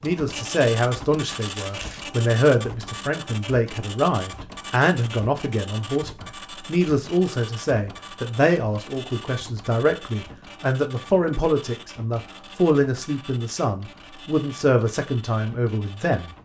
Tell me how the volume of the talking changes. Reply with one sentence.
The volume of the talking stays about the same.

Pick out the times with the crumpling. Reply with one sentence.
You can hear the crumpling from 1.3 to 2.0 s.